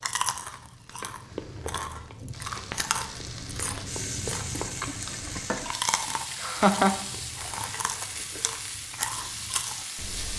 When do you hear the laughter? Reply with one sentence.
You can hear the laughter from 6.3 to 6.9 s.